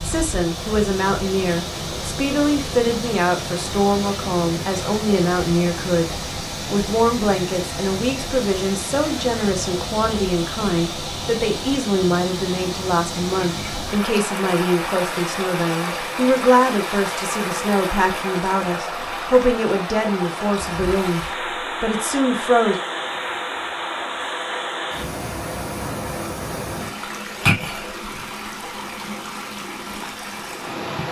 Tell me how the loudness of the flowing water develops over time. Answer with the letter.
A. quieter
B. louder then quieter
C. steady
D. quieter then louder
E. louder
C.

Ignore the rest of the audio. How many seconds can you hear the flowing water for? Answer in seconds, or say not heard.
31 s.